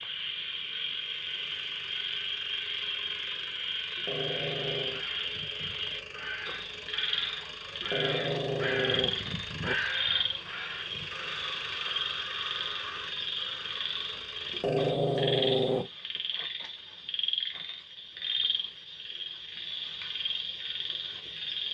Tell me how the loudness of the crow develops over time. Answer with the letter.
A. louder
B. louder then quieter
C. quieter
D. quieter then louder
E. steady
B.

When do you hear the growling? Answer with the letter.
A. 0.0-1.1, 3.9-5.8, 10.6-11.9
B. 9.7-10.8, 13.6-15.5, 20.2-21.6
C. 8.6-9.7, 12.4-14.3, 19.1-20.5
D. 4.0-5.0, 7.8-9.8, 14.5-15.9
D.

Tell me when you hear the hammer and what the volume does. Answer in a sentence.
The hammer can't be heard in this clip.